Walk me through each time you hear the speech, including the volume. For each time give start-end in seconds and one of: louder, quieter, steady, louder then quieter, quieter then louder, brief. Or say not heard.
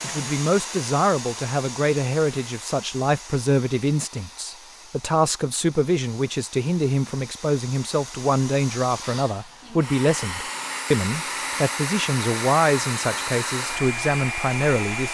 0.0-15.0 steady.